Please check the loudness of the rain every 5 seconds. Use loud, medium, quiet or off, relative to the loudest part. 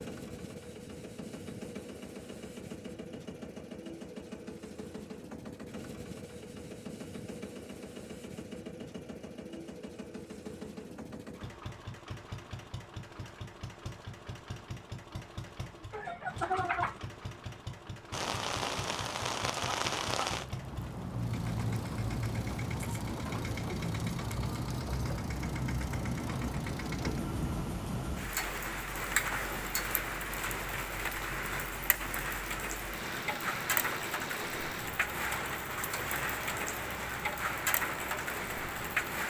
off, off, off, loud, loud, loud, loud, loud.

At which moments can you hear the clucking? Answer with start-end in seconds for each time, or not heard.
15.9-17.0.